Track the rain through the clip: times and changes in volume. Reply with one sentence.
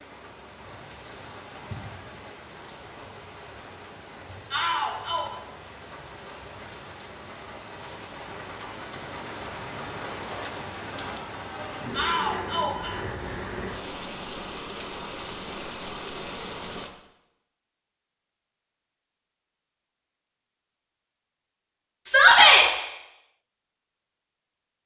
The rain can be heard from 0.0 to 16.9 s, getting louder.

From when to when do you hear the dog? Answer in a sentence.
The dog can't be heard in this clip.